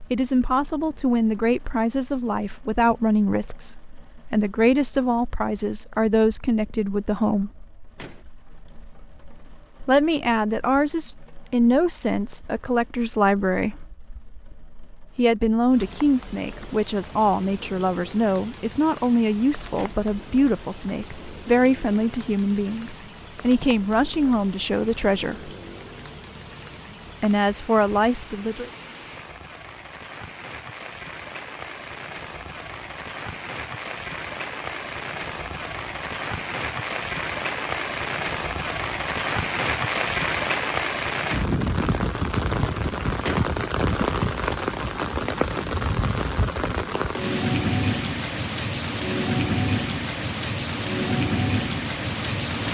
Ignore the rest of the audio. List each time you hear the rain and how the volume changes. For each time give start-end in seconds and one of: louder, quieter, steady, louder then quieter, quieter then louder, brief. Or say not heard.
0.0-52.7 louder.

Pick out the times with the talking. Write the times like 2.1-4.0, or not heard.
0.1-7.5, 9.8-13.9, 15.2-25.5, 27.2-28.7.